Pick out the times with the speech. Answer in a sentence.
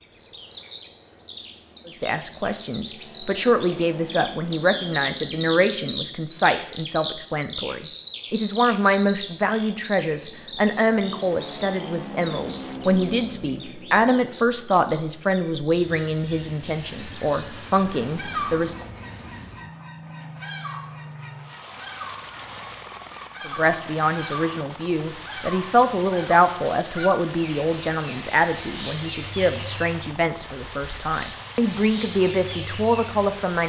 You can hear the speech from 1.9 to 18.8 s and from 23.4 to 33.6 s.